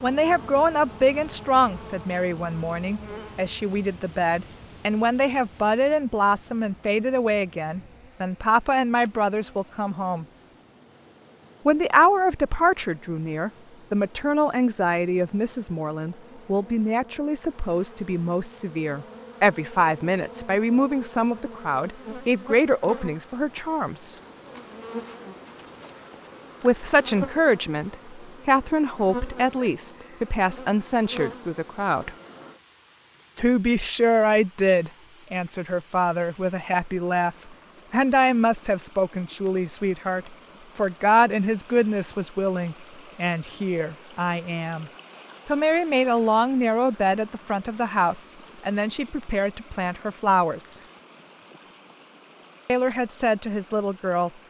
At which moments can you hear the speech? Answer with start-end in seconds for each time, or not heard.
0.0-10.2, 11.7-24.1, 26.6-32.1, 33.4-50.8, 52.6-54.3.